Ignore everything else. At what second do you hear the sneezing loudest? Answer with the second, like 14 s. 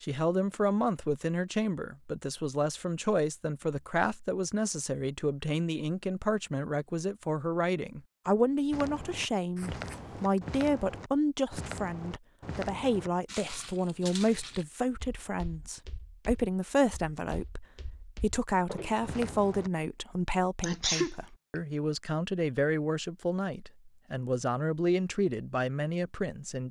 21 s.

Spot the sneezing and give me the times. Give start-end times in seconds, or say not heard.
9.6-10.4, 20.6-21.6.